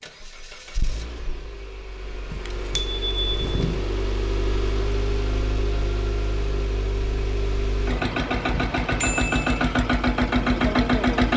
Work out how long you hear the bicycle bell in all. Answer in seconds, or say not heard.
2 s.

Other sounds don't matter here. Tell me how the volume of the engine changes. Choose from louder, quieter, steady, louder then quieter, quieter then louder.
louder.